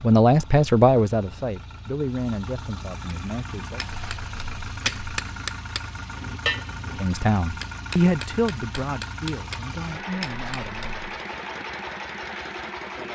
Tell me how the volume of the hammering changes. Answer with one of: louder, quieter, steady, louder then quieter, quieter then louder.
louder then quieter.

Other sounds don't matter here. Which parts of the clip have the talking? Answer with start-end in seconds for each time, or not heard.
0.0-3.8, 7.0-11.0.